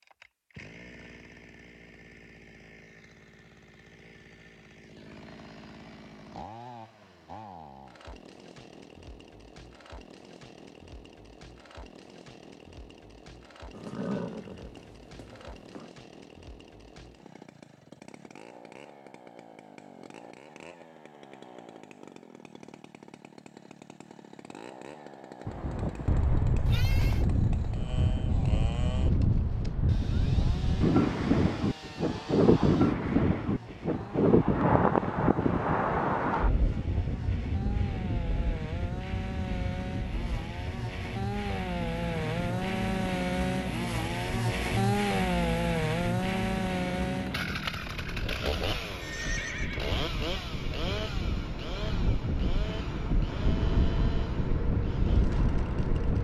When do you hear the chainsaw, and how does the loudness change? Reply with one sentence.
You can hear the chainsaw from 0.0 to 56.1 s, getting louder.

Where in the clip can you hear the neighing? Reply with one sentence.
The neighing can be heard from 13.7 to 15.9 s, from 26.6 to 27.2 s and from 49.0 to 50.0 s.